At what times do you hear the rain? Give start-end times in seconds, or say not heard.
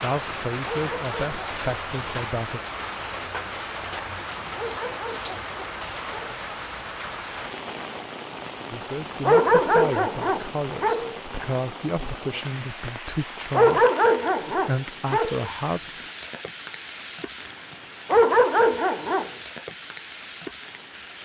0.0-21.2.